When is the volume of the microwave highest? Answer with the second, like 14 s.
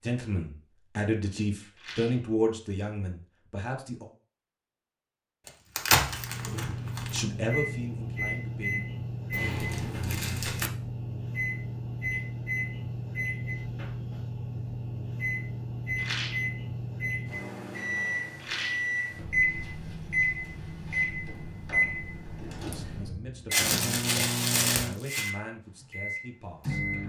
20 s.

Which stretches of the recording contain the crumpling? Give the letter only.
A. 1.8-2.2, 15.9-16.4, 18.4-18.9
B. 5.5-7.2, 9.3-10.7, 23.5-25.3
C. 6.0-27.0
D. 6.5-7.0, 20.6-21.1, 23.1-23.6
B.